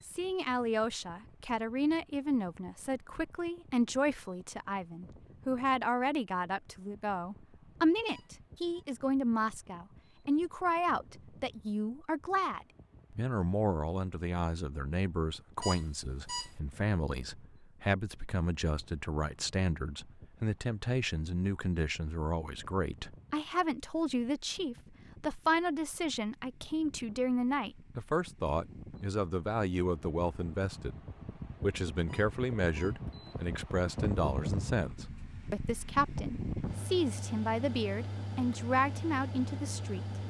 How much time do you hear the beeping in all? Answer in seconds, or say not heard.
3 s.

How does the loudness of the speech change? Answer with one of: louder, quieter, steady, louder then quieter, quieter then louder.
steady.